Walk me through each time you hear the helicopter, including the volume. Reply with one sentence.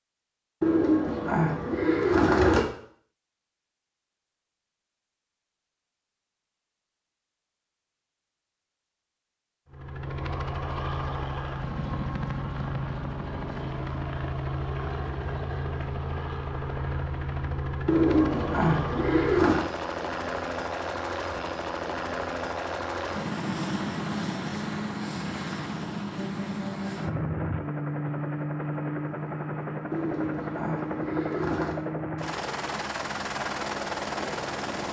The helicopter can be heard from 9.7 to 34.8 s, at a steady volume.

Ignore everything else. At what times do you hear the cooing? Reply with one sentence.
The cooing can be heard from 0.6 to 2.6 s, from 17.9 to 19.6 s and from 29.9 to 31.8 s.